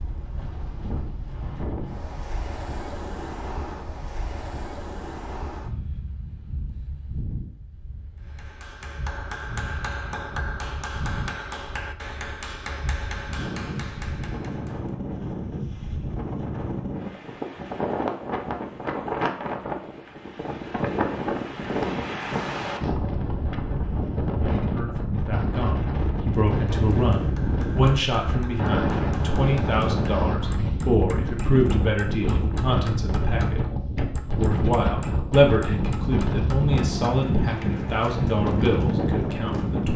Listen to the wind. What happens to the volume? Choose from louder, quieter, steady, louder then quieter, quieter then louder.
louder.